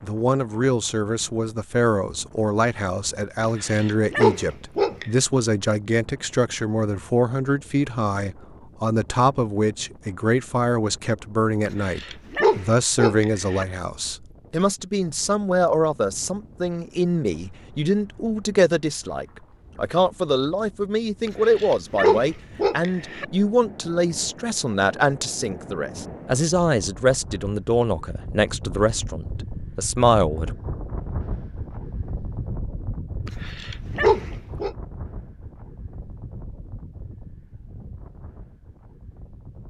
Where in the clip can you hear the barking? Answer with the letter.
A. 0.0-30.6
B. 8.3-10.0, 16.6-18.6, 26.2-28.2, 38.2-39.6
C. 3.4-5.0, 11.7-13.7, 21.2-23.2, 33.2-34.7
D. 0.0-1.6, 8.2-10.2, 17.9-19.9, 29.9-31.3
C.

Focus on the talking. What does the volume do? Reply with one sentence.
The loudness of the talking stays about the same.